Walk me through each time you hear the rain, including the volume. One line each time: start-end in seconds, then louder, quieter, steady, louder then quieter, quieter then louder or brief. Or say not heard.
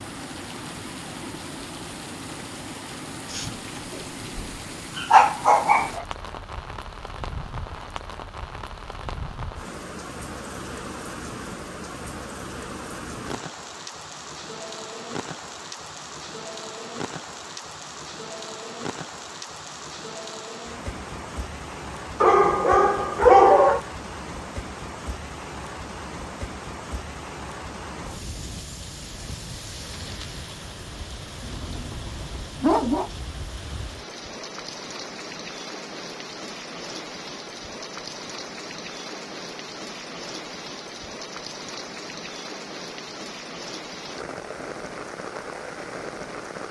0.0-46.6 steady.